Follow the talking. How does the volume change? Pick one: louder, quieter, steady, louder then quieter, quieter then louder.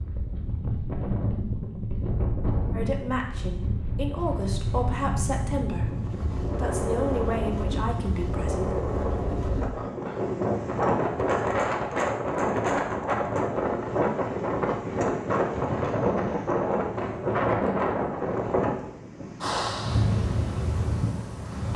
steady.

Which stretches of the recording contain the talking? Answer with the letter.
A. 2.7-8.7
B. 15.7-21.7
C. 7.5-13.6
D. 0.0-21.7
A.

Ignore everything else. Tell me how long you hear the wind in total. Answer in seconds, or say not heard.
22 s.